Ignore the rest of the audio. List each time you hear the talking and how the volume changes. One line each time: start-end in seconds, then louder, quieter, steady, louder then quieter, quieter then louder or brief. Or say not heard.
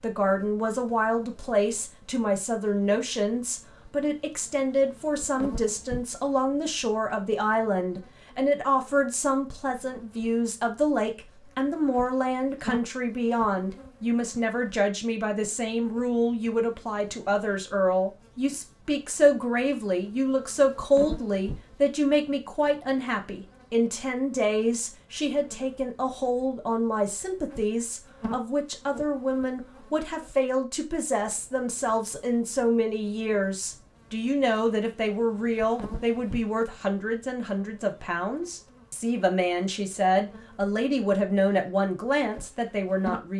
0.0-43.3 steady.